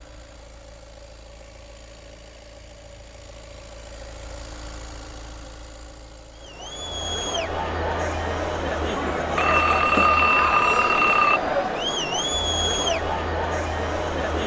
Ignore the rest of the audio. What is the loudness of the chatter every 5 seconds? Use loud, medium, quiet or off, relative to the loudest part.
off, loud, loud.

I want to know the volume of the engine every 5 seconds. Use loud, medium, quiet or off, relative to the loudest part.
loud, loud, off.